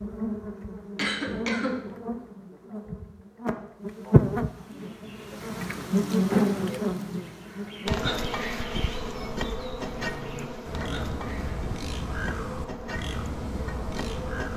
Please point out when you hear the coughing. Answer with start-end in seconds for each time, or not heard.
0.9-1.9.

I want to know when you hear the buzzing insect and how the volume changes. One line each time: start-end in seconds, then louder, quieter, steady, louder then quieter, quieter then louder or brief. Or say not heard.
0.0-14.5 louder then quieter.